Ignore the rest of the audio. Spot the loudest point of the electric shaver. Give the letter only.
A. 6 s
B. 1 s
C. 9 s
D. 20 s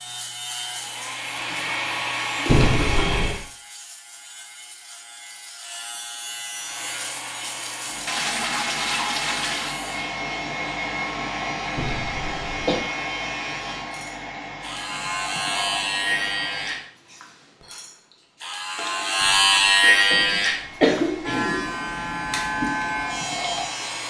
D.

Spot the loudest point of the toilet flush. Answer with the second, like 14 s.
9 s.